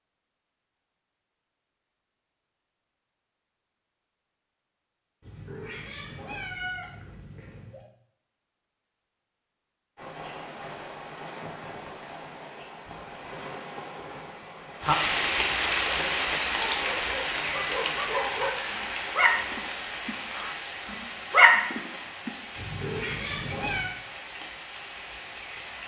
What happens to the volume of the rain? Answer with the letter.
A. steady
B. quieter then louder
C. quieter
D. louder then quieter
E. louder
D.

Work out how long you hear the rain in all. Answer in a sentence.
The rain can be heard for 16 seconds in total.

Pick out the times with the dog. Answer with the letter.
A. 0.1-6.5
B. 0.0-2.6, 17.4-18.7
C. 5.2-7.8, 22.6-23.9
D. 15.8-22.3
D.